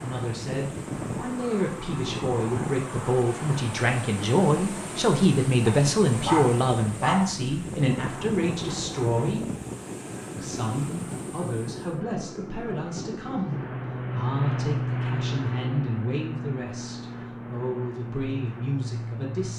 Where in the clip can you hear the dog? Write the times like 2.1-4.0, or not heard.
5.7-7.3.